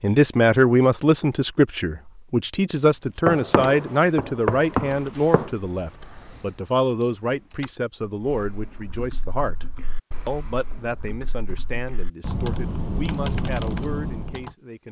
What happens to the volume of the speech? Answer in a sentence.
The loudness of the speech goes down.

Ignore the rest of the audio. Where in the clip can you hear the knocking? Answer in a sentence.
The knocking can be heard from 3.2 to 5.5 s.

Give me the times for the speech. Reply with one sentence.
You can hear the speech from 0.0 to 9.7 s and from 10.2 to 14.8 s.